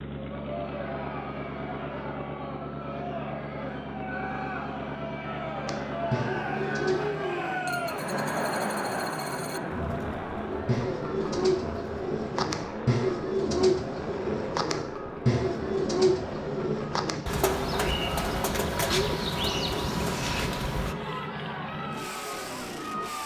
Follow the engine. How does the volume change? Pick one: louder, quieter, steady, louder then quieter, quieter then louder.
steady.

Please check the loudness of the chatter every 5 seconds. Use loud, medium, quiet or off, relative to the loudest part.
medium, loud, medium, medium, medium.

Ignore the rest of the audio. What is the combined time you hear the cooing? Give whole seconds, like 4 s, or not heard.
12 s.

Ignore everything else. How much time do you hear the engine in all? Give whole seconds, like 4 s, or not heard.
23 s.